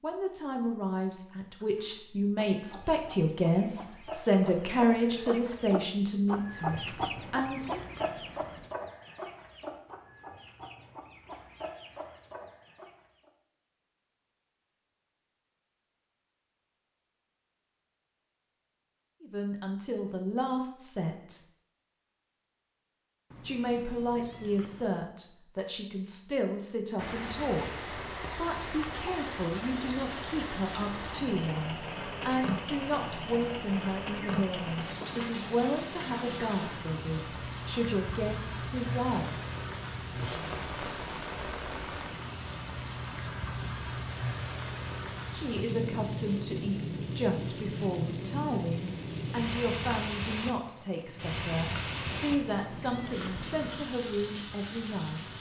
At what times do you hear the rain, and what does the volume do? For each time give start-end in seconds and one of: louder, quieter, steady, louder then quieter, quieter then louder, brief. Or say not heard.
26.9-55.3 steady.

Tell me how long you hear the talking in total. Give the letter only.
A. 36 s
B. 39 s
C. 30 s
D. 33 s
A.